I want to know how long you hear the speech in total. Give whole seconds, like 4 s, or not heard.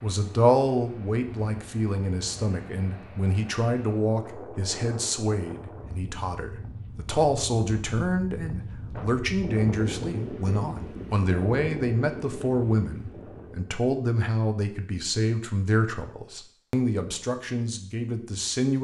19 s.